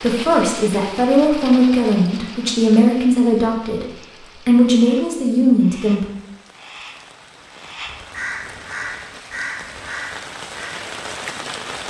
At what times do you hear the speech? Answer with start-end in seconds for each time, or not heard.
0.0-3.9, 4.5-6.0.